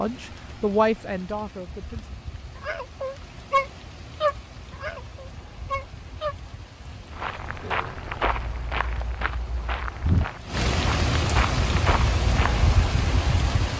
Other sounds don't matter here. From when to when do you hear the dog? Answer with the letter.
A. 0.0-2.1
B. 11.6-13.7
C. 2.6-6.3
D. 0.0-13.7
C.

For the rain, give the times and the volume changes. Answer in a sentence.
You can hear the rain from 0.0 to 13.7 s, getting louder.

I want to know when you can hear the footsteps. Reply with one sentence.
You can hear the footsteps from 7.1 to 12.7 s.